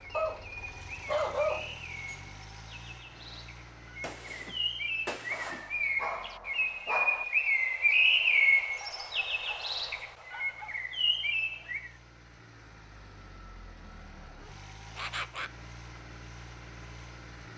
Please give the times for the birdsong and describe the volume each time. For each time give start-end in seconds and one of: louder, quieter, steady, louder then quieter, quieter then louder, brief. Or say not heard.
0.0-11.9 louder then quieter.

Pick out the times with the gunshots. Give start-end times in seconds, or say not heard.
4.0-5.8.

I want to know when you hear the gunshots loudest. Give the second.
5 s.